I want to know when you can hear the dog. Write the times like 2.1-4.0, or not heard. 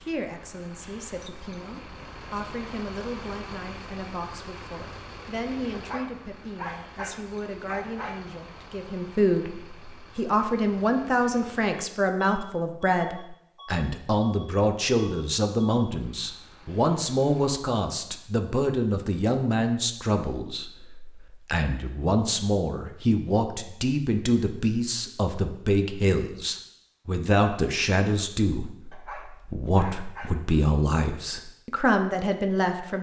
5.7-8.3, 28.9-30.4.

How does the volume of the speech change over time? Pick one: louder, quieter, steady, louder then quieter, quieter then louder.
louder.